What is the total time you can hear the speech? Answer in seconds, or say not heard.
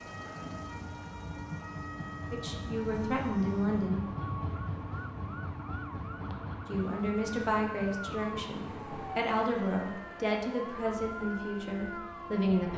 8 s.